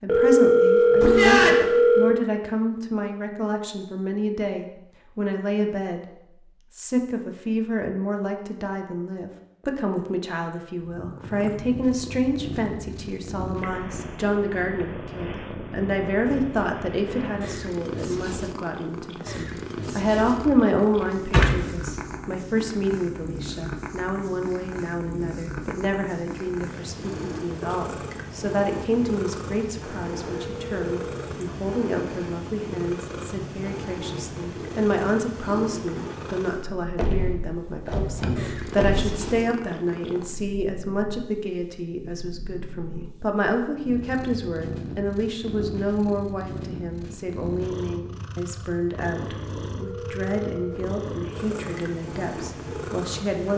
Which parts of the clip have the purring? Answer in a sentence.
You can hear the purring from 10.8 to 53.5 s.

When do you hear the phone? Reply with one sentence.
The phone can be heard from 0.1 to 2.1 s, from 30.2 to 31.2 s and from 49.8 to 50.9 s.